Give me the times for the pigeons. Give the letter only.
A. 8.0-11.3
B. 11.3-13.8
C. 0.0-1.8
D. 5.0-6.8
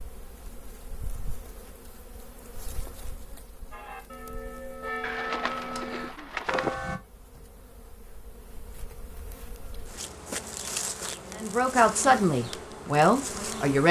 D.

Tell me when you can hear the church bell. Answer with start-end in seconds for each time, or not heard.
3.7-7.0.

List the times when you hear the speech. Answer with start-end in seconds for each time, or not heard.
11.3-13.8.